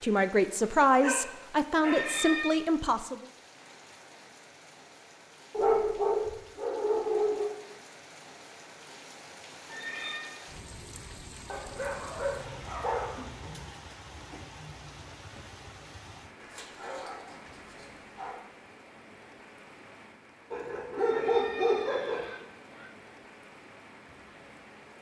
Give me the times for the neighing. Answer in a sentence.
You can hear the neighing from 1.8 to 2.5 s, from 9.7 to 10.3 s and from 21.0 to 22.9 s.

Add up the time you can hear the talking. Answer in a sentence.
The talking can be heard for 3 seconds in total.